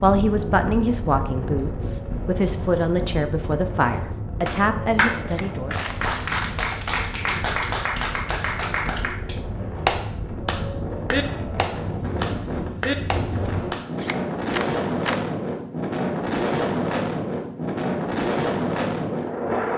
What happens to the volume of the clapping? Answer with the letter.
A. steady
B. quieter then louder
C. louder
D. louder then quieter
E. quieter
A.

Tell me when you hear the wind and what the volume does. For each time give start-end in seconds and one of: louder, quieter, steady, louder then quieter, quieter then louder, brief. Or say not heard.
0.0-19.7 louder.